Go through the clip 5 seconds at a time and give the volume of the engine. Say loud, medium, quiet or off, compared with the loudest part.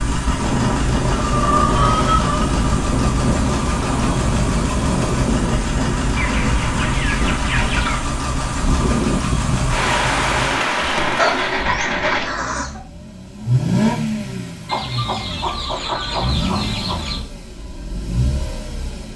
loud, loud, loud, medium.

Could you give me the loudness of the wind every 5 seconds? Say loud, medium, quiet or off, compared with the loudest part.
loud, loud, loud, off.